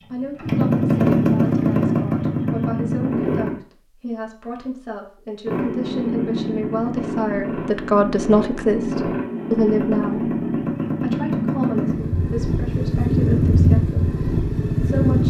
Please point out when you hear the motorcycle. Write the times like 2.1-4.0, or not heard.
0.0-3.5, 5.5-15.2.